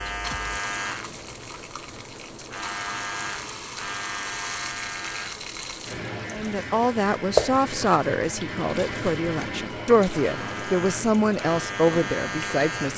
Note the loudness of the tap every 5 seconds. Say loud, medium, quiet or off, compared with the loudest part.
medium, loud, medium.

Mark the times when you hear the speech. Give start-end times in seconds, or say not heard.
6.3-12.9.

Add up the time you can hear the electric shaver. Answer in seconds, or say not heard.
13 s.